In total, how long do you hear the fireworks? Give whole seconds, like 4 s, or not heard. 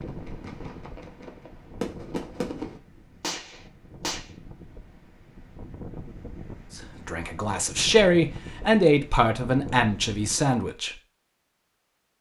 4 s.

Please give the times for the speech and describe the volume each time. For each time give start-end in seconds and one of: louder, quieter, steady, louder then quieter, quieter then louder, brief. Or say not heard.
6.8-10.9 louder then quieter.